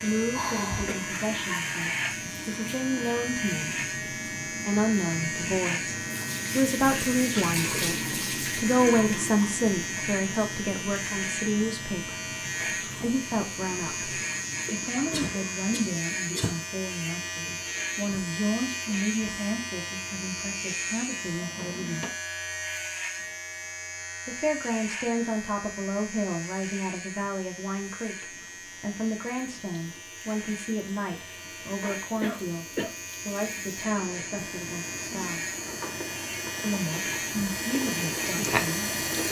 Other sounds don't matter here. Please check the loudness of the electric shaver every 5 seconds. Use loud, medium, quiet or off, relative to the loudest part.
loud, loud, loud, loud, loud, medium, medium, loud.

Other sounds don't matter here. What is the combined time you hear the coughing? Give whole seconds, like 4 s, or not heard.
3 s.